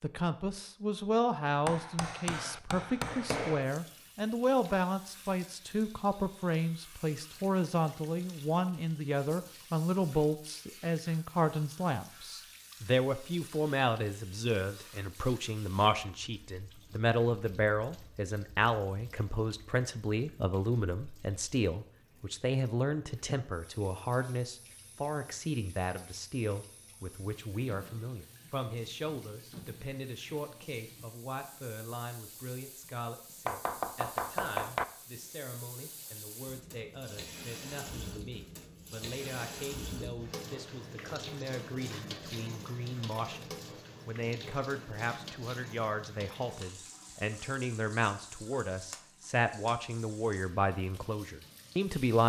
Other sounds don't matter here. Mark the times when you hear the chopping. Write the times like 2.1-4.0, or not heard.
1.6-3.6, 33.5-34.9.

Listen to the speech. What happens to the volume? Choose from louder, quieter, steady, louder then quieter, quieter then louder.
quieter then louder.